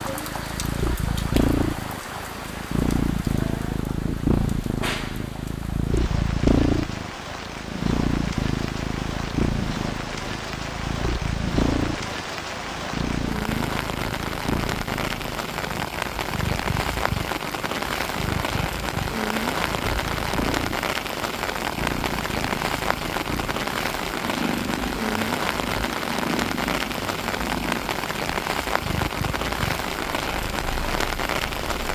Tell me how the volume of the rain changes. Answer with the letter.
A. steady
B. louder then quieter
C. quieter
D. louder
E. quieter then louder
D.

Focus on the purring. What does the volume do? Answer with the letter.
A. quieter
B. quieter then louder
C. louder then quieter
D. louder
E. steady
A.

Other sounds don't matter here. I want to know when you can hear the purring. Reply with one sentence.
You can hear the purring from 0.0 to 31.8 s.